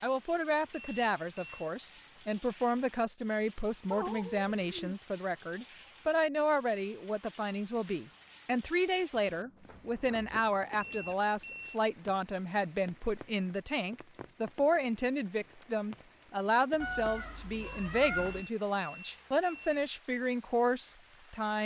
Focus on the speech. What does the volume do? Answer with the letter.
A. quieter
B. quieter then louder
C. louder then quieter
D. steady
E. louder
D.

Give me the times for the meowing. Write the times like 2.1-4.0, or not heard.
3.9-5.0, 9.2-11.2, 16.8-18.4.